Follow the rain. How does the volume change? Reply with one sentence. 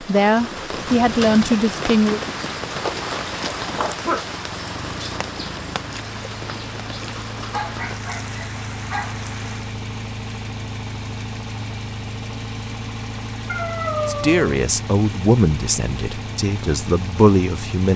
The volume of the rain goes down.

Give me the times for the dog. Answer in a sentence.
The dog can be heard from 2.8 to 4.2 s, from 7.5 to 9.2 s and from 13.4 to 14.6 s.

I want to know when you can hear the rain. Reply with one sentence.
The rain can be heard from 0.0 to 9.8 s.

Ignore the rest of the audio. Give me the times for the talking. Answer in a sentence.
The talking can be heard from 0.0 to 2.2 s and from 14.1 to 17.9 s.